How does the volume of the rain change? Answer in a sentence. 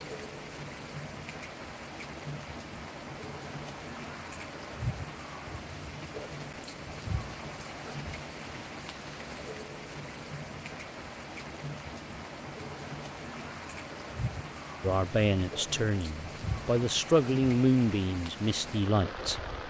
The loudness of the rain stays about the same.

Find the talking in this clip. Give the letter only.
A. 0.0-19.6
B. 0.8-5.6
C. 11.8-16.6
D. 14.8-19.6
D.